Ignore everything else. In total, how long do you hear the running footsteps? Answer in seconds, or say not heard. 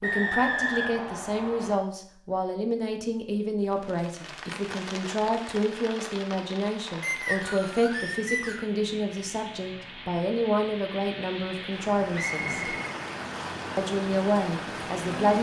not heard.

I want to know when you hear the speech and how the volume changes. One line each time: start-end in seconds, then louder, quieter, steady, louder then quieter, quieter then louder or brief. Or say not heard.
0.0-12.7 steady
13.8-15.3 brief.